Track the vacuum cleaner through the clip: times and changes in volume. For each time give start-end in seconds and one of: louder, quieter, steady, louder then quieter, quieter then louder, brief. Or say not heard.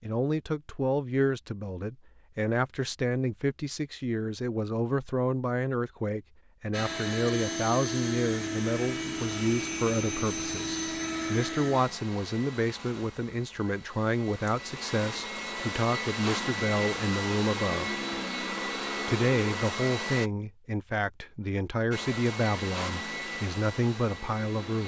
6.7-20.3 quieter then louder
21.9-24.8 brief.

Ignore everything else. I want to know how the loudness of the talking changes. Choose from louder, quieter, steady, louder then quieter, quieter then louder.
steady.